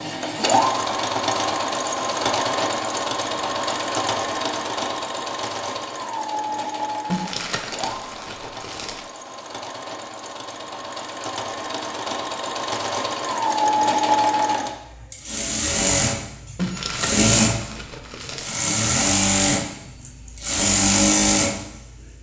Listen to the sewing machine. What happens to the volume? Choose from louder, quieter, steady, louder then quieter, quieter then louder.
quieter then louder.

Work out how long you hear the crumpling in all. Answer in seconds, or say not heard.
4 s.